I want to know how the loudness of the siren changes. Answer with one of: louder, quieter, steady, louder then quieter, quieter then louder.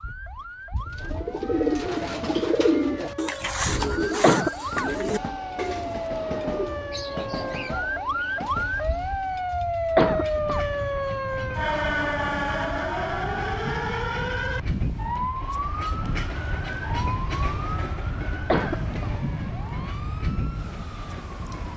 louder then quieter.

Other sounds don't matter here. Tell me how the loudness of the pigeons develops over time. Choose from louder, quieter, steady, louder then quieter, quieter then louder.
quieter.